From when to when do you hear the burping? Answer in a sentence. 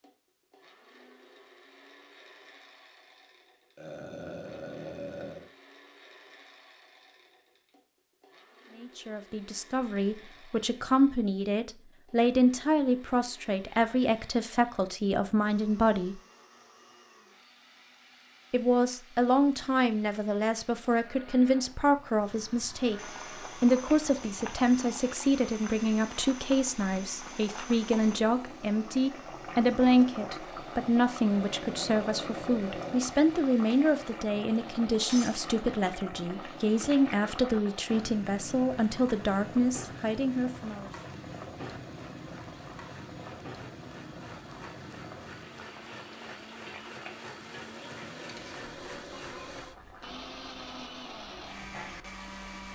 You can hear the burping from 3.8 to 5.5 s, from 31.2 to 33.1 s and from 47.6 to 49.6 s.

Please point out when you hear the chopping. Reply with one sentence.
The chopping can't be heard in this clip.